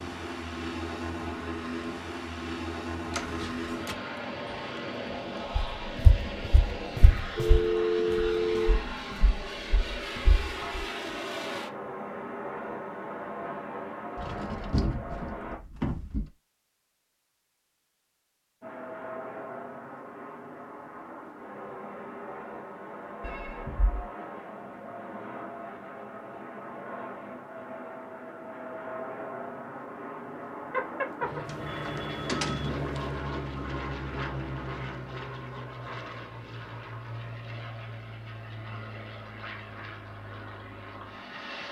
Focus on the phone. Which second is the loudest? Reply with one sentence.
The volume of the phone peaks at 8 seconds.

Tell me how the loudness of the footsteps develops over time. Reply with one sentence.
The volume of the footsteps goes down.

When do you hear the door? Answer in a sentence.
The door can be heard from 3.1 to 4.0 s, from 14.2 to 16.3 s and from 31.4 to 33.0 s.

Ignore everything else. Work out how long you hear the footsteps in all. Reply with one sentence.
The footsteps can be heard for 5 seconds in total.